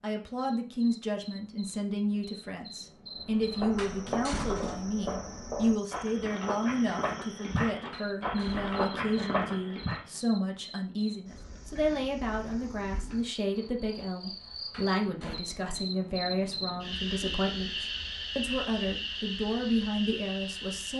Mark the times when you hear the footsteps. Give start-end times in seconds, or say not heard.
3.1-10.1.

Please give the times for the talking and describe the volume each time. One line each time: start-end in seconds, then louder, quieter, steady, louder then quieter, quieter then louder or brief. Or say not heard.
0.0-20.9 steady.